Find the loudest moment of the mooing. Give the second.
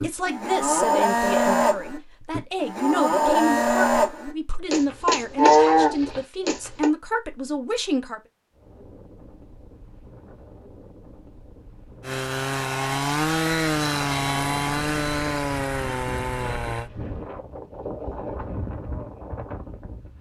6 s.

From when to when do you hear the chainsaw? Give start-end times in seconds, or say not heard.
12.0-16.9.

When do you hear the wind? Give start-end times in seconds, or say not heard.
8.5-20.1.